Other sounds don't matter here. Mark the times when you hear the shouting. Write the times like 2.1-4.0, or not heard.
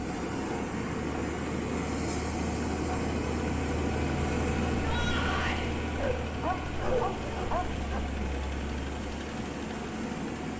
4.8-5.7.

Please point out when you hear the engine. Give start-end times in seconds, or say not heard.
0.1-10.5.